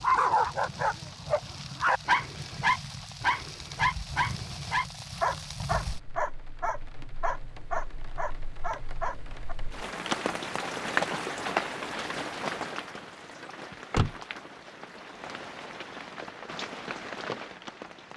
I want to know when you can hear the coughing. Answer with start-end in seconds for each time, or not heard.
not heard.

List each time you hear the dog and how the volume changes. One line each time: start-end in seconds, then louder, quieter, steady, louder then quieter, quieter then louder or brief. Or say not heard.
0.0-9.6 quieter.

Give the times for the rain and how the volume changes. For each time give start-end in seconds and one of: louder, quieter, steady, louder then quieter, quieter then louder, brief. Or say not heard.
0.0-18.1 louder then quieter.